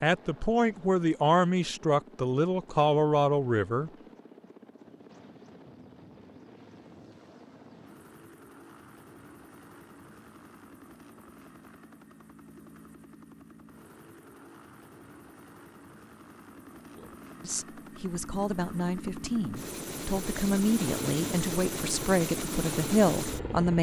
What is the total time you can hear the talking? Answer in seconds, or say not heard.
11 s.